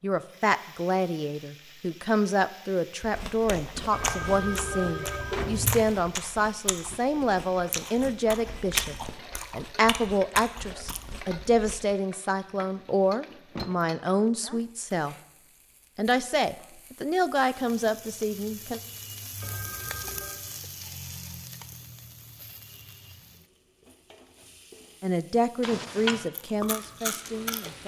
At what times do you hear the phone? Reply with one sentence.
The phone can be heard from 3.9 to 5.8 s and from 19.4 to 20.4 s.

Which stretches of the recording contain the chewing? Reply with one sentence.
The chewing can be heard from 3.0 to 11.9 s and from 26.3 to 27.8 s.